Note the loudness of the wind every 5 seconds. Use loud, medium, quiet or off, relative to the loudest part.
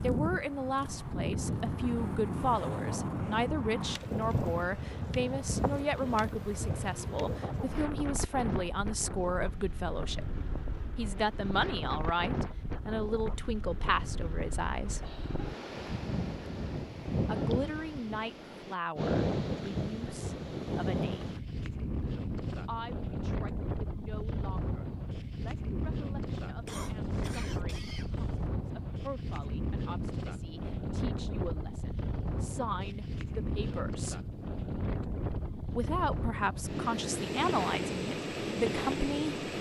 loud, loud, medium, loud, loud, loud, loud, loud.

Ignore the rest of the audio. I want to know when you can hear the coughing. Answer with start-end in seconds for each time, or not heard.
15.0-15.7, 26.6-28.5.